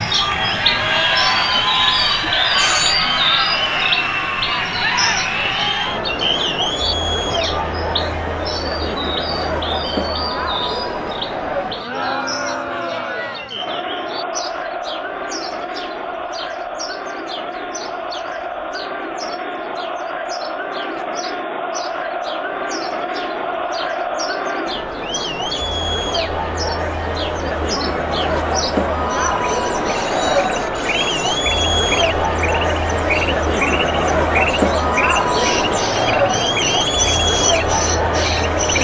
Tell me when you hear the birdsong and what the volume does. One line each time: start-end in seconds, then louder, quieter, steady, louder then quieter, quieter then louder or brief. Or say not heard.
0.0-38.7 quieter then louder.